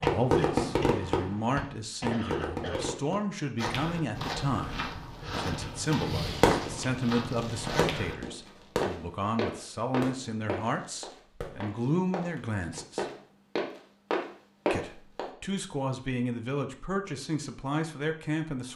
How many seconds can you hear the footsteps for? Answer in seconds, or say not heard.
12 s.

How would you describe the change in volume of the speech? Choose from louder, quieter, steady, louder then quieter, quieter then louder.
steady.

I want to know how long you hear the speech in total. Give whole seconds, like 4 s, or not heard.
17 s.